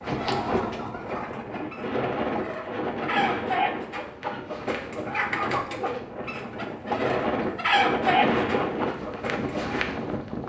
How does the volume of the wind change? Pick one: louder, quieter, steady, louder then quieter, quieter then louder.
quieter then louder.